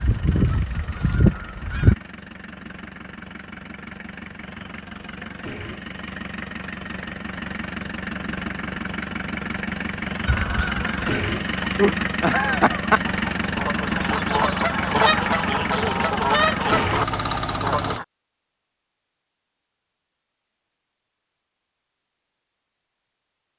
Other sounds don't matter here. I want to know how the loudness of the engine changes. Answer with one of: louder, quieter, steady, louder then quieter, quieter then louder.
louder.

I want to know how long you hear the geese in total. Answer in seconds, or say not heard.
10 s.